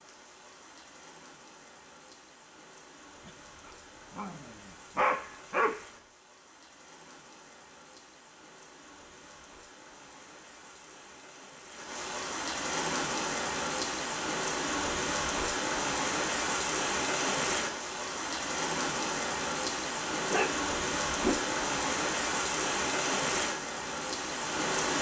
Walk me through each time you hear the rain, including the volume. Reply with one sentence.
You can hear the rain from 0.0 to 24.9 s, getting louder.